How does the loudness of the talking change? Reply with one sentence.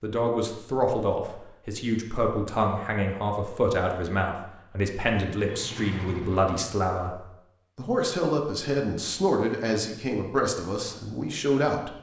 The loudness of the talking stays about the same.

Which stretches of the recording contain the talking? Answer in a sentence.
The talking can be heard from 0.0 to 11.9 s.